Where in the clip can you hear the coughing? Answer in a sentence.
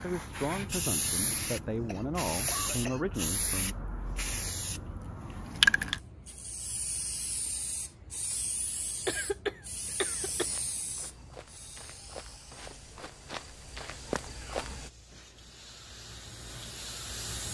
The coughing can be heard from 1.9 to 3.0 s and from 9.1 to 10.6 s.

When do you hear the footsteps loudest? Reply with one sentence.
The volume of the footsteps peaks at 14 seconds.